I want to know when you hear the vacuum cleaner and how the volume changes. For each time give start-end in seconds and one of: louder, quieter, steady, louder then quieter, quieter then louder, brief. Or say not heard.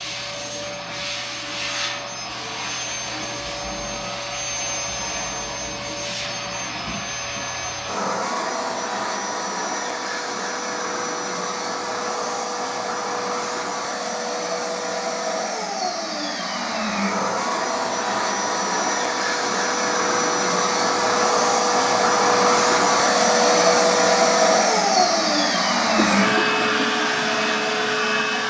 0.0-28.4 louder.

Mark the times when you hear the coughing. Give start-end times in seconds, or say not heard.
25.8-26.9.